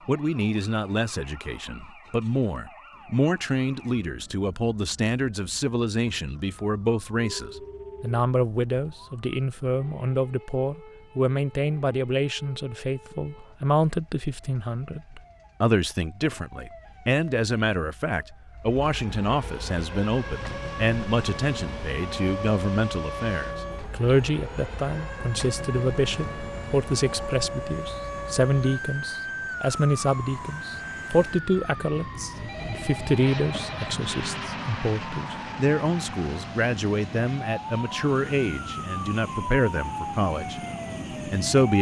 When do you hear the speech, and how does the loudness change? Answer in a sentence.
You can hear the speech from 0.1 to 40.6 s, at a steady volume; and briefly from 41.2 to 41.7 s.